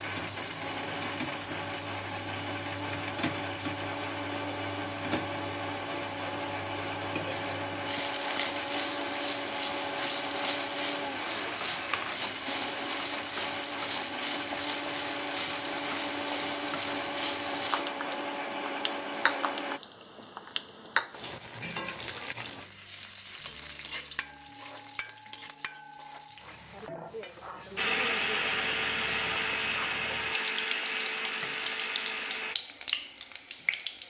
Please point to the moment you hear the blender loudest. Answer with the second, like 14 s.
28 s.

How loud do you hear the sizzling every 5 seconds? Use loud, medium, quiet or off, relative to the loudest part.
medium, loud, loud, loud, loud, medium, loud.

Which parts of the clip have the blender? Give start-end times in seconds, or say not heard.
0.0-19.8, 27.8-32.5.